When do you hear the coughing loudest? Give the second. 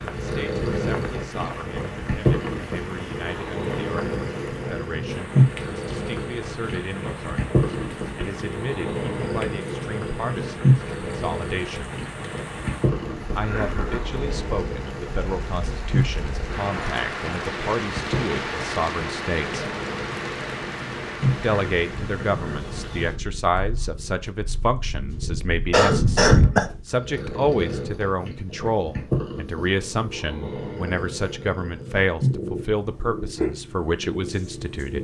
26 s.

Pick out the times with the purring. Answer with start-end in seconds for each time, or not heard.
0.0-34.9.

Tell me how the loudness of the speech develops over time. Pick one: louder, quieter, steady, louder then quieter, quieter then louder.
louder.